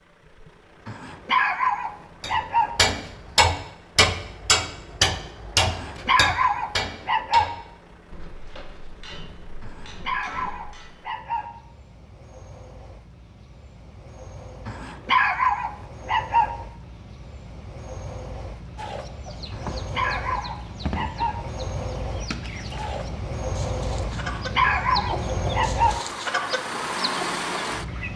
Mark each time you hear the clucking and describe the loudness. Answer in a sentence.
You can hear the clucking from 18.8 to 28.1 s, getting louder.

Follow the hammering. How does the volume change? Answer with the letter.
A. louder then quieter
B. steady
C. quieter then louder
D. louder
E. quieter
E.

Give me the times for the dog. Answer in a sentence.
You can hear the dog from 0.8 to 2.7 s, from 5.7 to 7.5 s, from 9.6 to 11.5 s, from 14.7 to 16.5 s, from 19.5 to 21.4 s and from 24.1 to 26.0 s.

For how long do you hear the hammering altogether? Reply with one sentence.
You can hear the hammering for 9 seconds altogether.